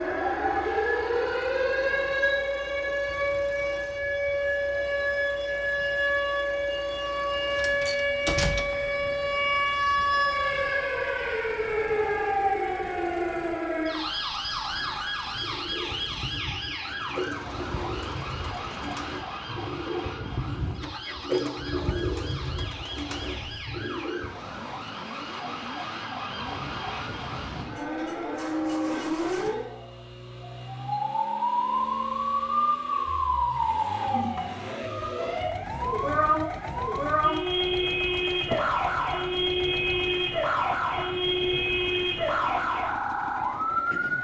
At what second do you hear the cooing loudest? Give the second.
21 s.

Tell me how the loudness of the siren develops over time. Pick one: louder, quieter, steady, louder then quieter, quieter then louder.
quieter then louder.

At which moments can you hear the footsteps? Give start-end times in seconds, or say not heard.
not heard.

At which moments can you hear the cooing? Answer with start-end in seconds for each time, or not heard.
14.9-24.6.